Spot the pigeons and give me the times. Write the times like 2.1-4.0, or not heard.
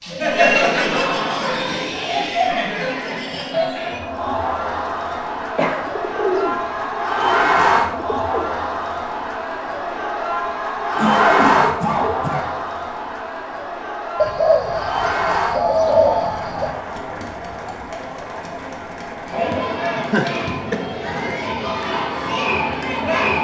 5.7-8.5, 14.2-16.8.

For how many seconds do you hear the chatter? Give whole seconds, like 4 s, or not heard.
23 s.